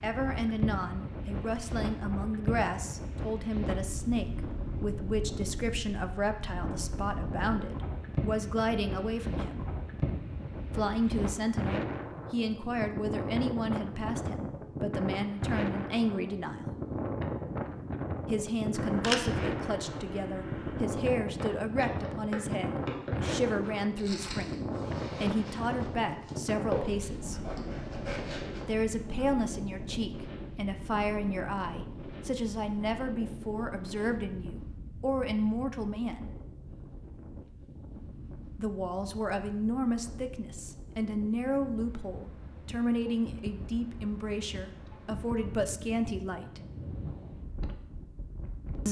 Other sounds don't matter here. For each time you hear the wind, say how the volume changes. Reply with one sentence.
You can hear the wind from 0.0 to 48.8 s, getting quieter.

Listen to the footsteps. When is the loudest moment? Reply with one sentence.
The loudest moment of the footsteps is at 27 seconds.